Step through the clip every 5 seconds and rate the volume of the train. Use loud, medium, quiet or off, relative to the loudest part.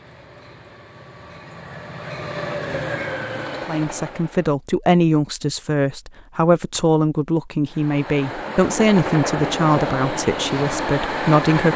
medium, loud, loud.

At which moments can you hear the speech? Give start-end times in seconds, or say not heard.
3.6-11.7.